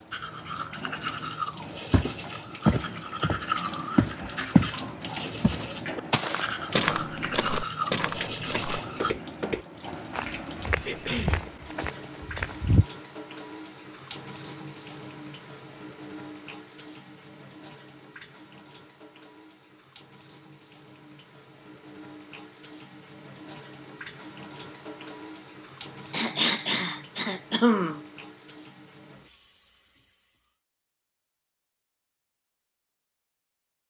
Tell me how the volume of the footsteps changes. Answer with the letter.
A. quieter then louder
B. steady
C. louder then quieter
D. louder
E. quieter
E.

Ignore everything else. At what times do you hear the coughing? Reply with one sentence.
You can hear the coughing from 10.8 to 11.4 s and from 26.1 to 28.0 s.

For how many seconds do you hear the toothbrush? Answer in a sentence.
The toothbrush can be heard for 9 seconds in total.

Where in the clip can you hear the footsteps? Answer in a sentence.
The footsteps can be heard from 1.9 to 12.8 s.